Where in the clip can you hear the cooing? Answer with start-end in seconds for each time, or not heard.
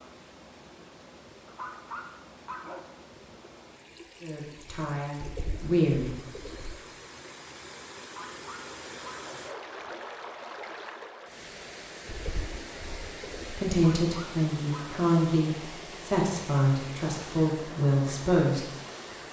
5.2-6.8, 12.1-13.6.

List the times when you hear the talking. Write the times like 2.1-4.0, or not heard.
4.2-6.1, 13.4-18.6.